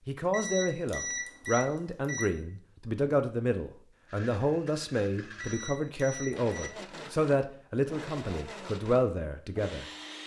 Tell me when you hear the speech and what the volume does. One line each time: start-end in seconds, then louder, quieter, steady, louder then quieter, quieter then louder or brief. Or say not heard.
0.1-9.8 steady.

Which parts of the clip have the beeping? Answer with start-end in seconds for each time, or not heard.
0.3-2.2, 5.4-6.7.